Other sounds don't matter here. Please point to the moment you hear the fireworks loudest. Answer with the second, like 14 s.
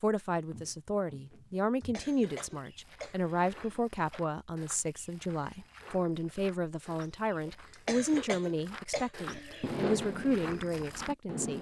10 s.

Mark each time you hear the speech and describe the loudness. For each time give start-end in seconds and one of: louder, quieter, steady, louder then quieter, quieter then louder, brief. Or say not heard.
0.0-11.5 steady.